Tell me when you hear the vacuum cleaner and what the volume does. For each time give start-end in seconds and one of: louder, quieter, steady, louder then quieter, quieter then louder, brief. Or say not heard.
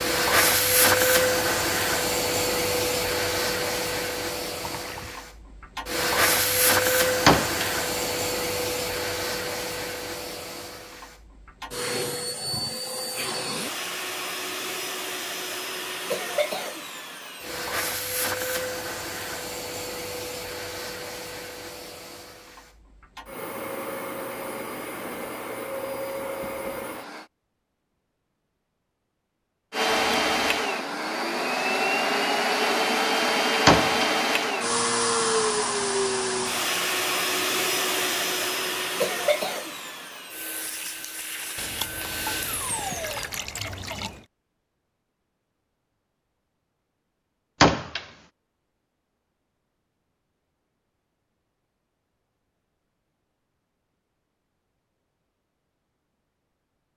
0.0-27.2 quieter
29.7-43.3 quieter.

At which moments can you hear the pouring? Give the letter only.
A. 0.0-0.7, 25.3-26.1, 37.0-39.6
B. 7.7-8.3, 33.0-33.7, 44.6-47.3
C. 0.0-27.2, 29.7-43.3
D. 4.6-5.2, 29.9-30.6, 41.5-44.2
D.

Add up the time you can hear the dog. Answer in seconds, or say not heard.
not heard.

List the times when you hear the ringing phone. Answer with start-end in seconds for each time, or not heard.
not heard.